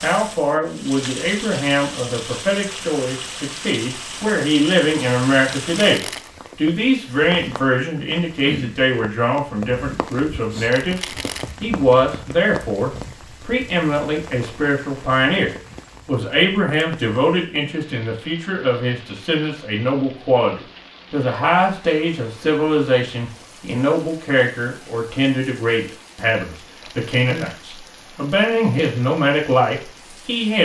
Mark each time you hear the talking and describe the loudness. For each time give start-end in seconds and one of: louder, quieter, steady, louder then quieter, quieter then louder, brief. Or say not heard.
0.0-30.6 steady.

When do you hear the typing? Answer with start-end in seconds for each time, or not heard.
not heard.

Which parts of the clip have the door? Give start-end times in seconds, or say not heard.
not heard.